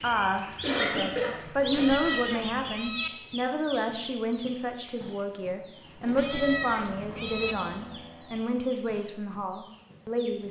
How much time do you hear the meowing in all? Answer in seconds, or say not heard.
3 s.